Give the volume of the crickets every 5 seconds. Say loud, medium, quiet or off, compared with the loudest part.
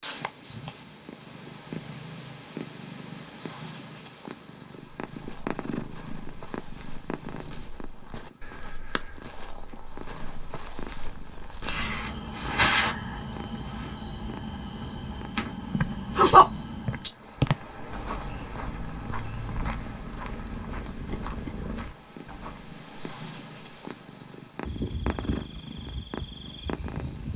loud, loud, loud, loud, quiet, quiet.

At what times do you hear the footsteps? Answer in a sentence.
You can hear the footsteps from 5.0 to 11.8 s and from 15.7 to 22.8 s.